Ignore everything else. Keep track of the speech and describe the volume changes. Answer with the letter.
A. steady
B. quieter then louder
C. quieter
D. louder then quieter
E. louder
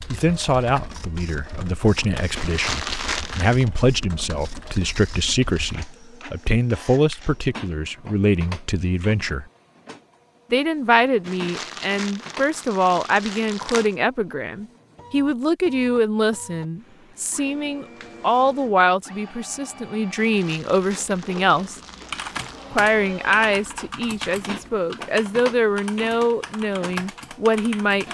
A.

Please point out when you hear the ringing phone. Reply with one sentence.
The ringing phone can't be heard in this clip.